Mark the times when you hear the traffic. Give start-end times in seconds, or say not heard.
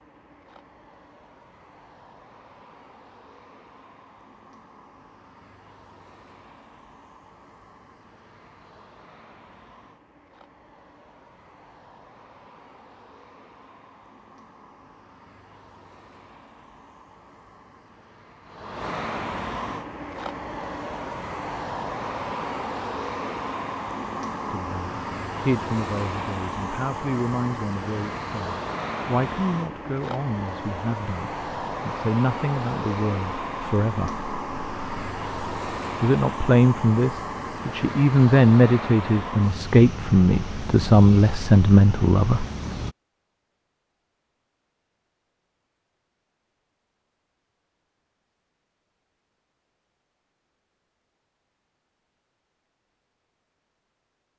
0.0-43.0.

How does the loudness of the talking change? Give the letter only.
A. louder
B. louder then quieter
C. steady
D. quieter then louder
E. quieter
A.